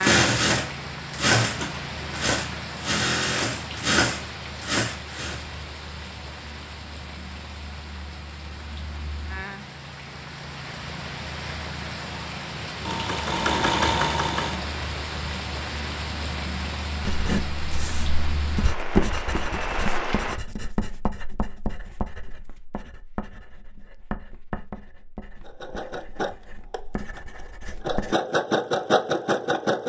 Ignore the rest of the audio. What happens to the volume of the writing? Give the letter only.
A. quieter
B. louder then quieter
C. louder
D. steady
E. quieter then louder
A.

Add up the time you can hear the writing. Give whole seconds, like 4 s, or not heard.
11 s.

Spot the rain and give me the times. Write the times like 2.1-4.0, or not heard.
0.0-20.4.